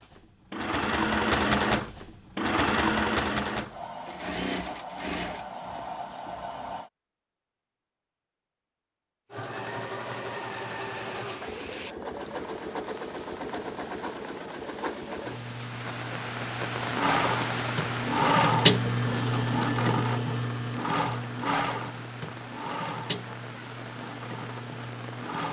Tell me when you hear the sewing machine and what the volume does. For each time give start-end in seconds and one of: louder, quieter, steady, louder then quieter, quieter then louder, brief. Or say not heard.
0.0-6.9 quieter
9.3-25.4 louder then quieter.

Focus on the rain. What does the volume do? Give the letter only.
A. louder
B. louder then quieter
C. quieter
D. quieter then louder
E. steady
B.